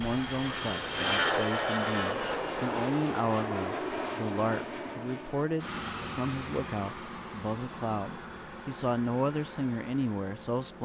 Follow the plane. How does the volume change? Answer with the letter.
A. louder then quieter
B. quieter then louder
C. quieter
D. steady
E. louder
C.